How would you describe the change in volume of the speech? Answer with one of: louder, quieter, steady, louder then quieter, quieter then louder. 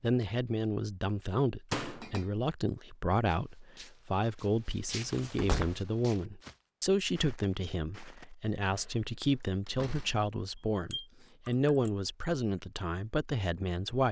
steady.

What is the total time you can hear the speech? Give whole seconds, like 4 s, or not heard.
14 s.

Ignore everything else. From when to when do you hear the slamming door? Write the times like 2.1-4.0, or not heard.
1.7-2.1, 5.3-5.8, 9.5-10.2.